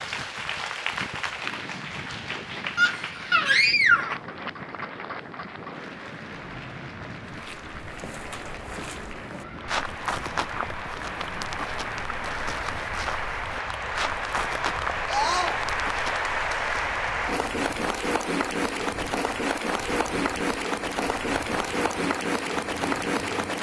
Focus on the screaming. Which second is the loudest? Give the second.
4 s.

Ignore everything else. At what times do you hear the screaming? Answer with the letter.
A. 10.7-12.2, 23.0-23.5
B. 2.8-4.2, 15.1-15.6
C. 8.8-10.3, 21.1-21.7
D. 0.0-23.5
B.